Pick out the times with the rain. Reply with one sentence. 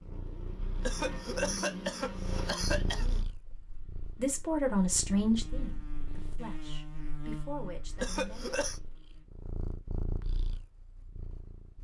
You can't hear the rain here.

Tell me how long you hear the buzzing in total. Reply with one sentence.
The buzzing can be heard for 9 seconds in total.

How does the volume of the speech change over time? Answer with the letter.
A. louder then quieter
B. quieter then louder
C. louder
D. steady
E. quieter
B.